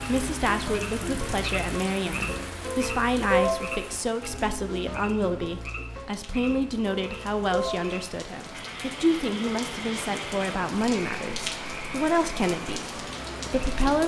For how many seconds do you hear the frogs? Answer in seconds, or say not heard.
14 s.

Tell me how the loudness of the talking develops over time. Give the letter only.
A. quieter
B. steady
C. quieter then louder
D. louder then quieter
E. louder
B.